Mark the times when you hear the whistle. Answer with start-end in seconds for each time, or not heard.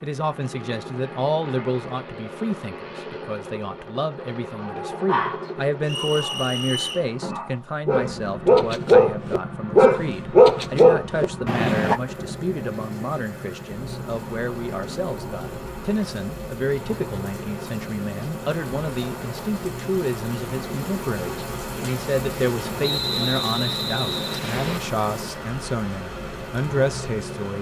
5.8-7.0, 22.8-24.8.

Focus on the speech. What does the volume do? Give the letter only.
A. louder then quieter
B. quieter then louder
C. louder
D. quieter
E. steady
E.